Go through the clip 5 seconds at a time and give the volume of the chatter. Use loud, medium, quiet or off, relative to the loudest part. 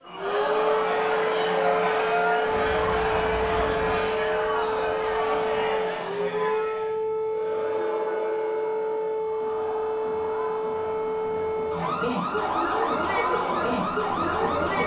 loud, medium, medium.